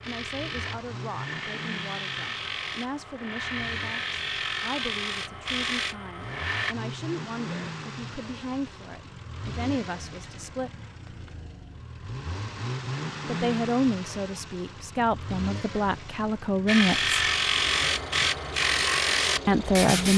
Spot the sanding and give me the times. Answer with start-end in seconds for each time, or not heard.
0.0-6.8, 16.6-20.1.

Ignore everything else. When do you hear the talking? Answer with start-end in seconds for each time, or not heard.
0.1-10.7, 13.2-17.1, 19.4-20.1.